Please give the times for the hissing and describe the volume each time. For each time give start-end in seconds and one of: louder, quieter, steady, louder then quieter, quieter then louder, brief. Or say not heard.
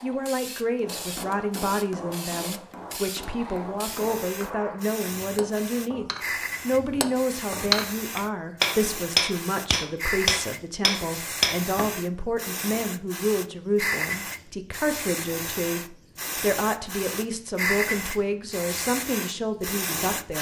0.0-20.3 louder.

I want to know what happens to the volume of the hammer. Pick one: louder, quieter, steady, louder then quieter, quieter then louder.
louder.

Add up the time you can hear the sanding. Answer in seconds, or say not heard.
not heard.